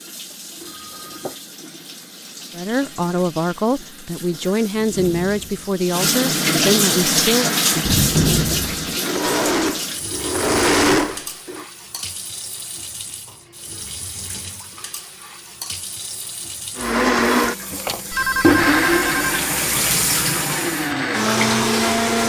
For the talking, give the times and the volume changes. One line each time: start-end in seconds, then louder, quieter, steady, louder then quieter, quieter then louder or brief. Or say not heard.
2.5-7.5 steady.